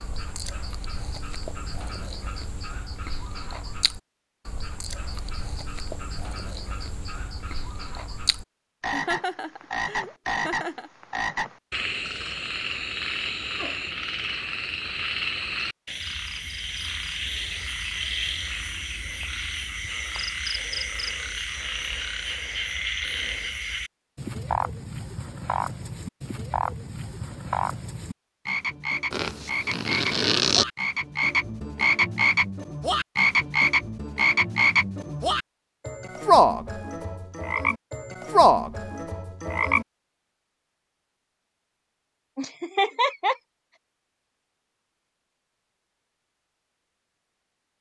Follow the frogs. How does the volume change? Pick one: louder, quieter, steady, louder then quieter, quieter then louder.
louder.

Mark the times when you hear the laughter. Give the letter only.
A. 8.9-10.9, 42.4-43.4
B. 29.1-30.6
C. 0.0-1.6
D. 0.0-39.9
A.